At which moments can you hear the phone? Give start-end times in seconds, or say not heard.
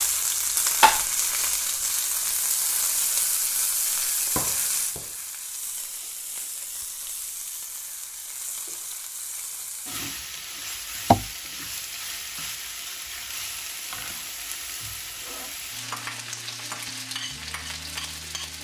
not heard.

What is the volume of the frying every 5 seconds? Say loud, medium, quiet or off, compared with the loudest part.
loud, medium, medium, medium.